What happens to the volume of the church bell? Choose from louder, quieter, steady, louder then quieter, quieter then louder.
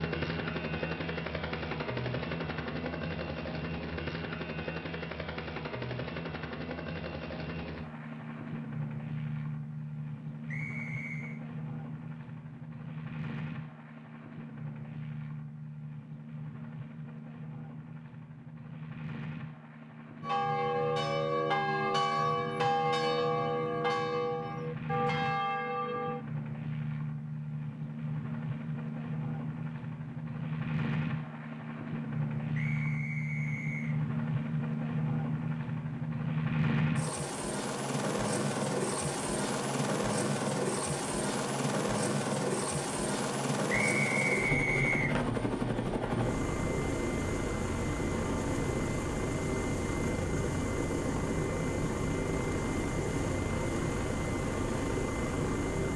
steady.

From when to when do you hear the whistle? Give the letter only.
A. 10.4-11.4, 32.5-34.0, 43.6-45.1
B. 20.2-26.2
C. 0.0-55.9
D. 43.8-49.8
A.